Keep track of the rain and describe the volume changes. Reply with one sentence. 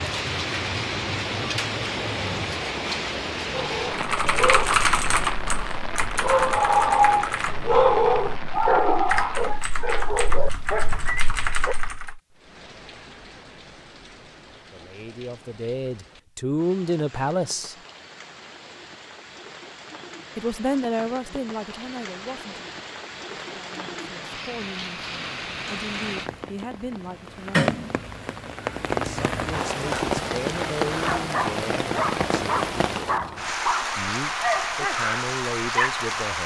The volume of the rain goes down, then up.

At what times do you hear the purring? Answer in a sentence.
The purring can't be heard in this clip.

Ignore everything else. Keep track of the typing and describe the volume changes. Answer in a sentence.
The loudness of the typing goes down.